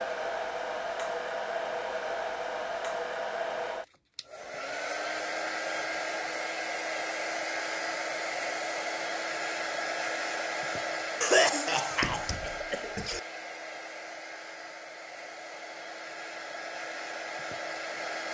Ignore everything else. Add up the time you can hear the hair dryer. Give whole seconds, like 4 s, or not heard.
18 s.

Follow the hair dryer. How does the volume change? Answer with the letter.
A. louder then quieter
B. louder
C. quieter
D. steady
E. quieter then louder
C.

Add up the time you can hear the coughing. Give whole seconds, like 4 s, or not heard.
2 s.